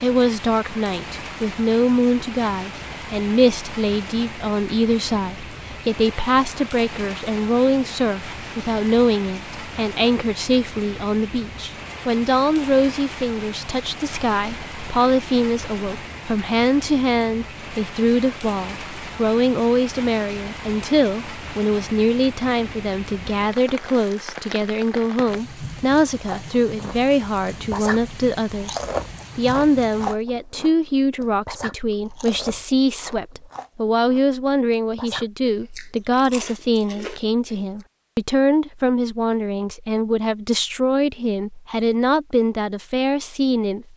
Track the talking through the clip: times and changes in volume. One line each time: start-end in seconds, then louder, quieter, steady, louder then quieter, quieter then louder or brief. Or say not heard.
0.0-43.9 steady.